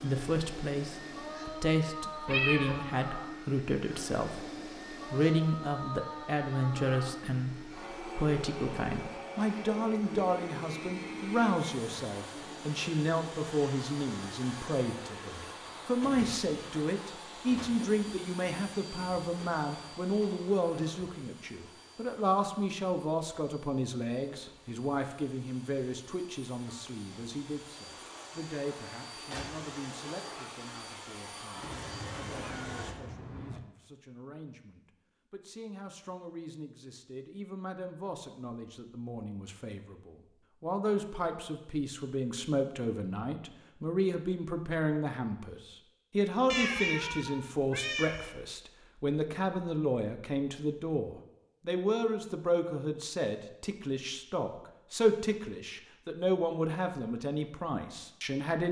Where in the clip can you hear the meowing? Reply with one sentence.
You can hear the meowing from 2.2 to 2.8 s, from 31.6 to 33.6 s and from 46.5 to 48.3 s.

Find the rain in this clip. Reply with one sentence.
The rain can't be heard in this clip.